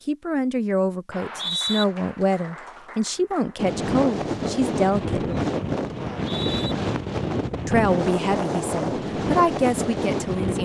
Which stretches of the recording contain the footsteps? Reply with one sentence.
The footsteps can't be heard in this clip.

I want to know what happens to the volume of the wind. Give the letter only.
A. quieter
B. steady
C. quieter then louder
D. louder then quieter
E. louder
B.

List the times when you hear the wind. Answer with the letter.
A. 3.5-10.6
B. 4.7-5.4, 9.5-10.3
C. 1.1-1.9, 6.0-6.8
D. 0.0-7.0
A.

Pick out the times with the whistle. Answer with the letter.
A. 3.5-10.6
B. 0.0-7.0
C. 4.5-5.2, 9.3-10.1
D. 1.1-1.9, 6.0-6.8
D.